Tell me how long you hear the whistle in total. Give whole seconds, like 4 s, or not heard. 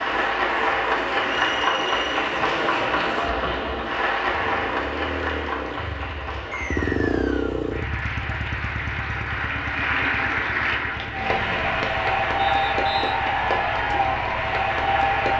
3 s.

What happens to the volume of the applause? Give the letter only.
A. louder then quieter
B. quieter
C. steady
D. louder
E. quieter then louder
E.